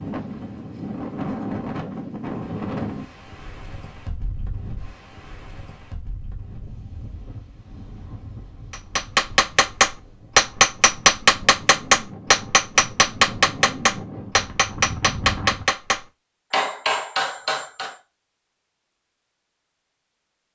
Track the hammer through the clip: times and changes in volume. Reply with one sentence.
You can hear the hammer from 8.7 to 18.0 s, getting quieter.